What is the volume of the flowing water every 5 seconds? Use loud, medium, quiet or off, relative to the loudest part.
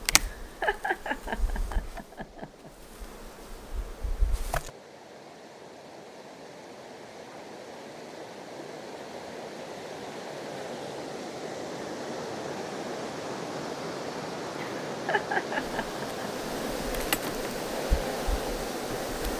quiet, medium, loud, loud.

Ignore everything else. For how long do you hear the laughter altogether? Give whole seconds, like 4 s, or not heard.
5 s.